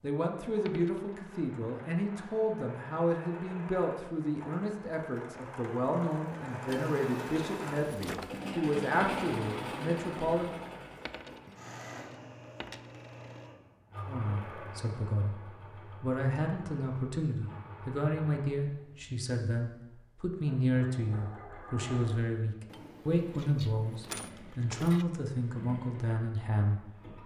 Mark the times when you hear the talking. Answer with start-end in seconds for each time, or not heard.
0.0-10.6, 14.1-27.1.